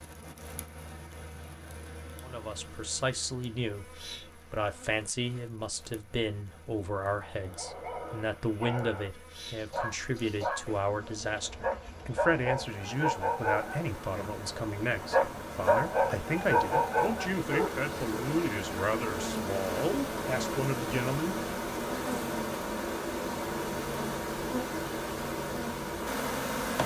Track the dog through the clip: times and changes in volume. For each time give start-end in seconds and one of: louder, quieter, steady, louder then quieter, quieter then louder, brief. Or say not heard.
7.4-18.2 louder.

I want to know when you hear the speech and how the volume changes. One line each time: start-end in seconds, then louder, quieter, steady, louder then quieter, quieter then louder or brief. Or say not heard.
2.2-21.4 steady.